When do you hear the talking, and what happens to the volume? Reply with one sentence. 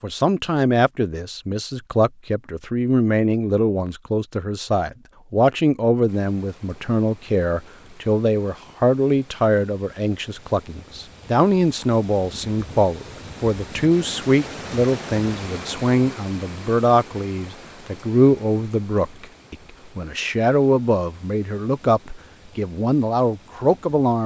The talking can be heard from 0.0 to 24.2 s, at a steady volume.